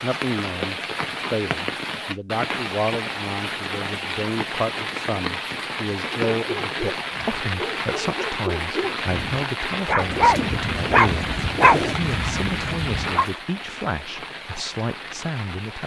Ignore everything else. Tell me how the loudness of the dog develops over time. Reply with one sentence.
The volume of the dog goes up.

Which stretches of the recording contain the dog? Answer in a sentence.
The dog can be heard from 6.3 to 13.2 s.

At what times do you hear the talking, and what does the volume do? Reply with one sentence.
The talking can be heard from 0.0 to 15.8 s, at a steady volume.